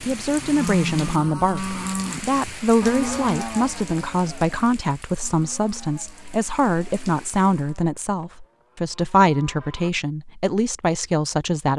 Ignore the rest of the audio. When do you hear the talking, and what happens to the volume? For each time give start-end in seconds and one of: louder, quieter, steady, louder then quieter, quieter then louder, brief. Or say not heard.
0.0-11.7 steady.